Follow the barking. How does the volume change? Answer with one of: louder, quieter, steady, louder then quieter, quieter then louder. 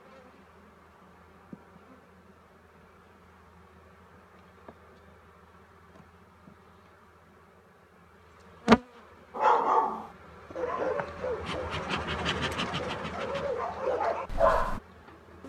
quieter then louder.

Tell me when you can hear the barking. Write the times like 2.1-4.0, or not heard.
9.3-14.8.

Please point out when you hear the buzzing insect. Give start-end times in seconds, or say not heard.
0.0-15.4.